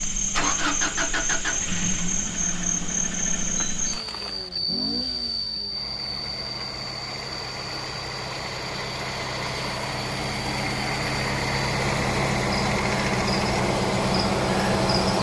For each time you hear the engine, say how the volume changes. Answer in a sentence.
You can hear the engine from 0.0 to 15.1 s, getting quieter then louder.